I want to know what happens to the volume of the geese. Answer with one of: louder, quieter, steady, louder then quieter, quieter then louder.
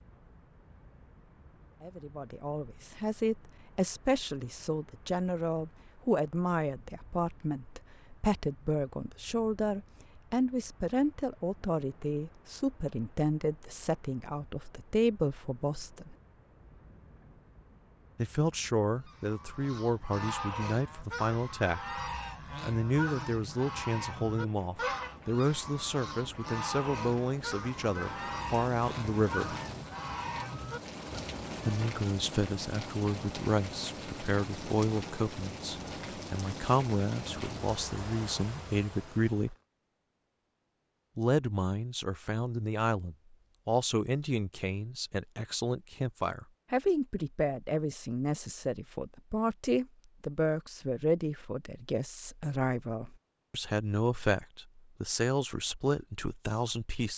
steady.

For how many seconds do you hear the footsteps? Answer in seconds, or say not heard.
not heard.